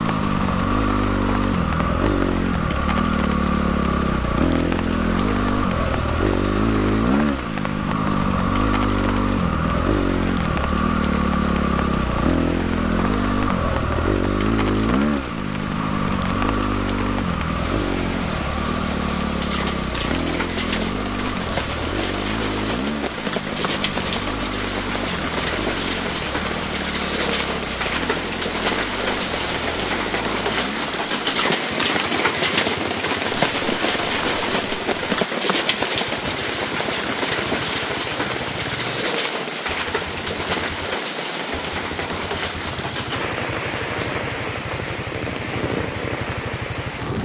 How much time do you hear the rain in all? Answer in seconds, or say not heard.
47 s.